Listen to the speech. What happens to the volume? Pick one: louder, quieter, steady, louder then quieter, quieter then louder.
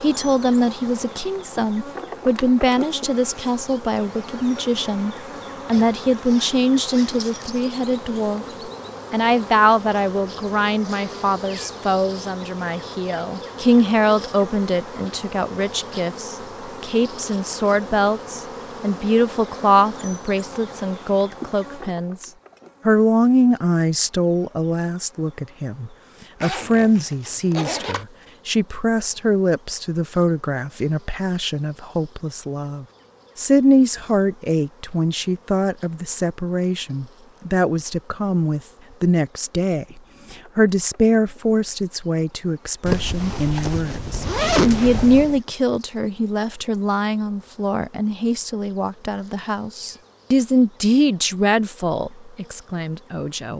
steady.